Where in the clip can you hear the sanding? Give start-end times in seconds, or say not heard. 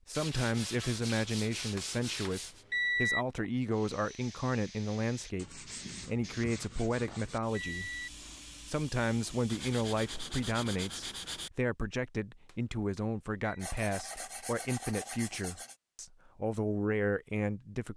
0.1-2.6, 5.3-7.4, 9.4-11.5, 13.6-15.8.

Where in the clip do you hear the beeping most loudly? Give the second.
3 s.